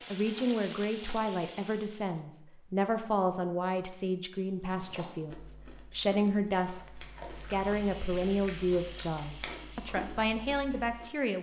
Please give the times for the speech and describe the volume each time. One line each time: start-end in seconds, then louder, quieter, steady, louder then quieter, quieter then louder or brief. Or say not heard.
0.1-11.3 steady.